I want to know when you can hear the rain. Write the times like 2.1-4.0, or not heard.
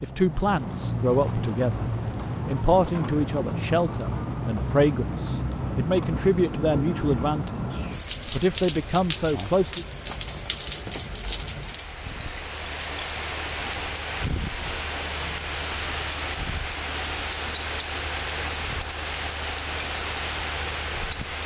0.0-21.4.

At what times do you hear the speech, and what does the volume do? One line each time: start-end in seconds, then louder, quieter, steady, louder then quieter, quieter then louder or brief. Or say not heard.
0.0-9.8 steady.